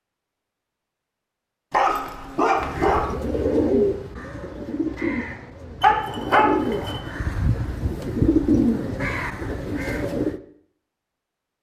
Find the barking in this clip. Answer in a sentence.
The barking can be heard from 1.7 to 3.1 s and from 5.8 to 7.0 s.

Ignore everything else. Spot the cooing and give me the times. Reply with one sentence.
The cooing can be heard from 2.5 to 10.4 s.